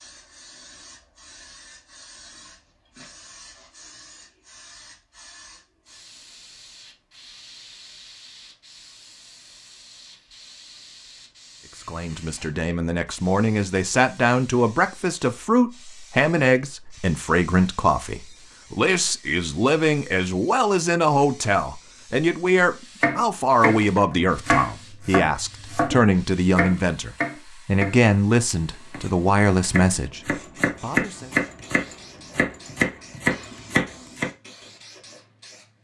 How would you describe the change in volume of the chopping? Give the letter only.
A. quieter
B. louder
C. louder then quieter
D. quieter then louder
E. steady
D.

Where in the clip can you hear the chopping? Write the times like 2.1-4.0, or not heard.
23.0-34.3.